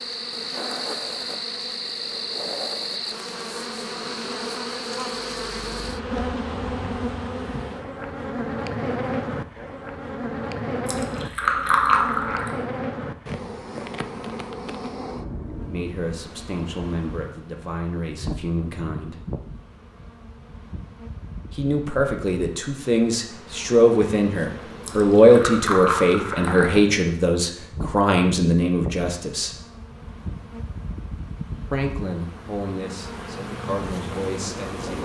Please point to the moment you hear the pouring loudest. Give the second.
12 s.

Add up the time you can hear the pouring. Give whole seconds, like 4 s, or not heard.
4 s.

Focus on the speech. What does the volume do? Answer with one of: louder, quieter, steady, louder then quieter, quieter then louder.
louder then quieter.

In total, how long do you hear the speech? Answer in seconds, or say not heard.
15 s.